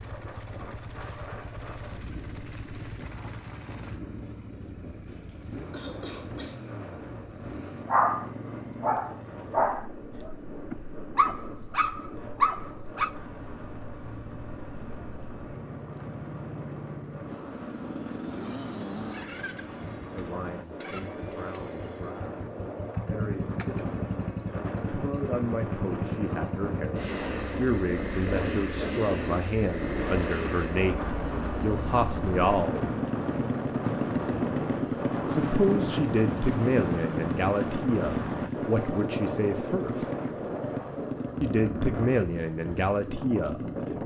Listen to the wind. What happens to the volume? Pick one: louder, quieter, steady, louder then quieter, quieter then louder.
louder.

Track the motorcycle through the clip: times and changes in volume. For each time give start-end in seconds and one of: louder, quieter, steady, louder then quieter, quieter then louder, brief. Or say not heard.
0.0-44.0 louder.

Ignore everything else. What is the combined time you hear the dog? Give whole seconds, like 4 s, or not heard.
5 s.